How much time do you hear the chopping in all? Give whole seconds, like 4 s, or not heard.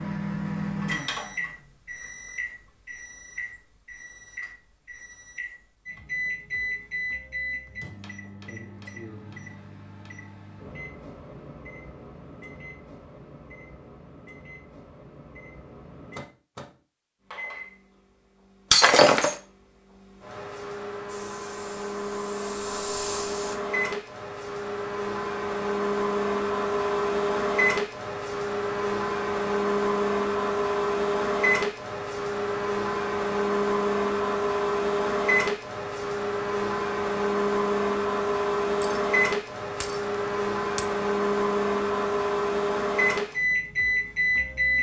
not heard.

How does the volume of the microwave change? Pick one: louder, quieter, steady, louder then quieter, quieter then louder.
quieter then louder.